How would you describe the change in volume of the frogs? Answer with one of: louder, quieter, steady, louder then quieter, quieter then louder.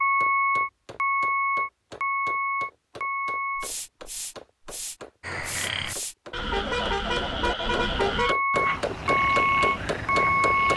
steady.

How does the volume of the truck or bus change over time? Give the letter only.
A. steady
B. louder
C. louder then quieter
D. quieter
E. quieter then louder
E.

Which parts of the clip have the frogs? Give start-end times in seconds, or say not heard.
5.2-10.7.